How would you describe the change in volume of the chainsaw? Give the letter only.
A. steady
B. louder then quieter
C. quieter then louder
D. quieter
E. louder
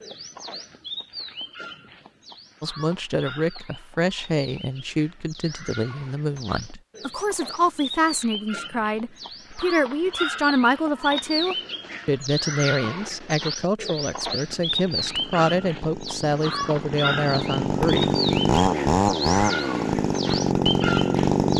E.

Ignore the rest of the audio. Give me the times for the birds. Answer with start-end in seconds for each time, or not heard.
0.0-21.5.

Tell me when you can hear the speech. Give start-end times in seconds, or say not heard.
2.6-18.1.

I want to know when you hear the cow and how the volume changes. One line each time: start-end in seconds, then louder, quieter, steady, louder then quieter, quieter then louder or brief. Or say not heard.
not heard.